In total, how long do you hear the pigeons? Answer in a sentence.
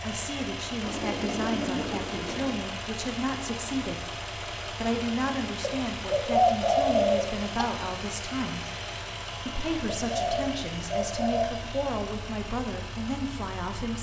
You can hear the pigeons for 5 seconds altogether.